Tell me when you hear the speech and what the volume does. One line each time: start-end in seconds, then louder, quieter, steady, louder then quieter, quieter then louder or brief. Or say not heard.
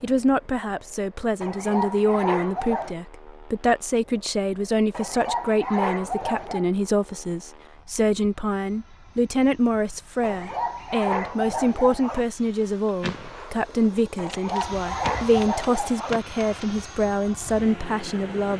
0.0-18.5 steady.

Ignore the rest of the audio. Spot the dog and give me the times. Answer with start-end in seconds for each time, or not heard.
1.4-3.0, 4.9-6.7, 10.2-12.2, 14.2-16.2.